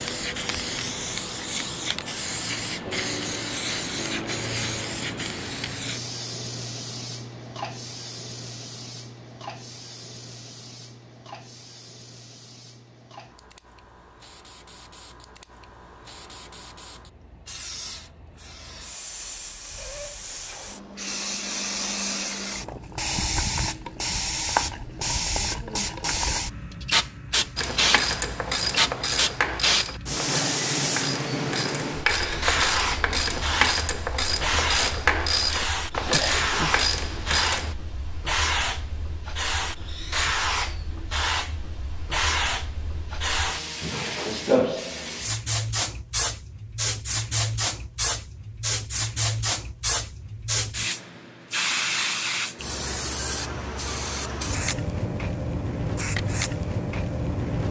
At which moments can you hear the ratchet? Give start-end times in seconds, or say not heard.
27.6-37.8.